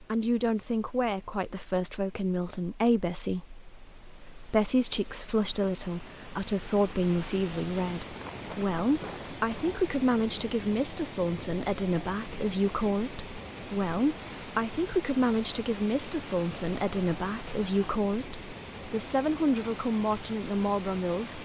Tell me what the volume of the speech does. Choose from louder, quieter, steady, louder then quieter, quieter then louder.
steady.